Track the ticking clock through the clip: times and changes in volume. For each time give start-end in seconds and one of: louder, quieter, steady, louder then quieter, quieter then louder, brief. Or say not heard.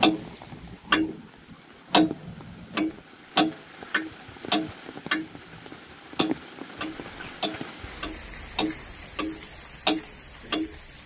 0.0-1.2 brief
1.9-10.7 quieter then louder.